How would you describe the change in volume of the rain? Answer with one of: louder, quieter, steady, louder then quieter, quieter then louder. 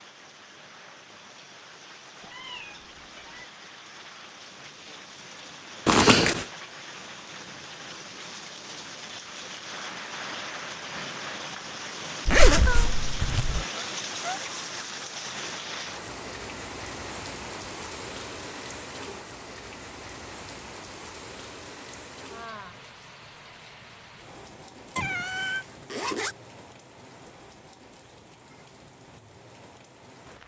louder then quieter.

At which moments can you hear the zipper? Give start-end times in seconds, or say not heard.
5.8-6.5, 12.2-13.7, 25.1-26.4.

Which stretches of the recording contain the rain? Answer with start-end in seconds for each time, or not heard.
0.0-30.4.